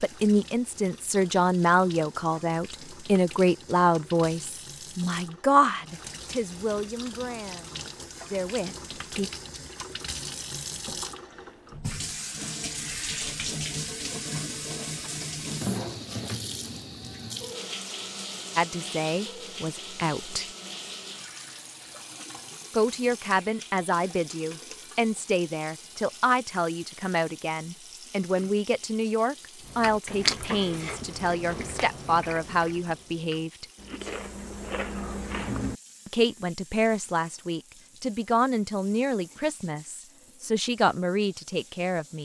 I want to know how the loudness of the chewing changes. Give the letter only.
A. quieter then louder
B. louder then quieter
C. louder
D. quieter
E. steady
A.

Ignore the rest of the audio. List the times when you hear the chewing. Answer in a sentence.
The chewing can be heard from 29.6 to 35.8 s.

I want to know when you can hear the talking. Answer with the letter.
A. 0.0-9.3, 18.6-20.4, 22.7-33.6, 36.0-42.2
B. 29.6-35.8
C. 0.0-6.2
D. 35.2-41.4
A.